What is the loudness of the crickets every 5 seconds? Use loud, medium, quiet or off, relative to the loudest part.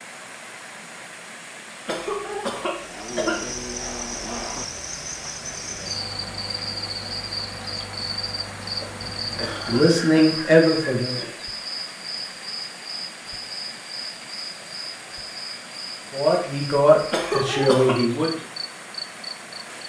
loud, loud, loud, medium.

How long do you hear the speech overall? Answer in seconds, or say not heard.
4 s.